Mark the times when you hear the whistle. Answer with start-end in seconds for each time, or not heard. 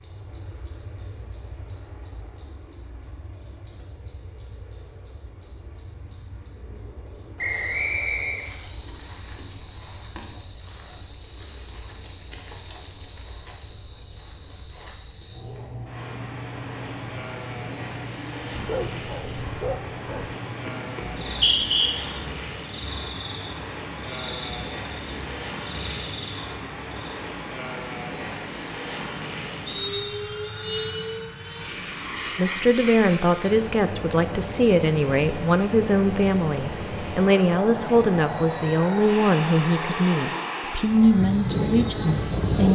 7.3-8.4, 21.2-21.9, 29.6-30.6.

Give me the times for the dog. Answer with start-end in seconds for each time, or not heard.
18.5-20.4.